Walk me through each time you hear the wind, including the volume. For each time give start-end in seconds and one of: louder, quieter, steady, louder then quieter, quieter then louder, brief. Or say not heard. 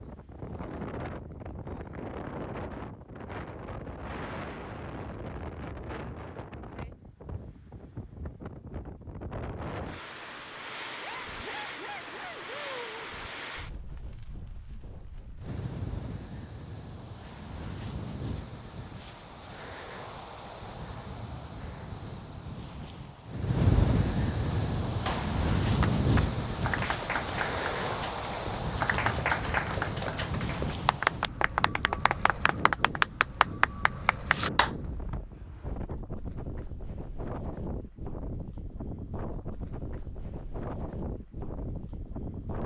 0.0-42.6 louder then quieter.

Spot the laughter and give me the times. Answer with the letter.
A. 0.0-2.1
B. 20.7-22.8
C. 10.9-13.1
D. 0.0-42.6
C.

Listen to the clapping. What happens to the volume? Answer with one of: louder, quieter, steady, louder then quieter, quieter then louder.
louder.